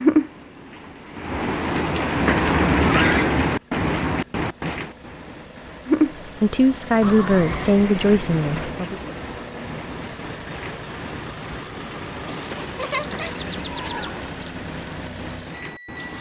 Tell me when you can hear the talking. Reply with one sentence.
The talking can be heard from 6.4 to 9.2 s.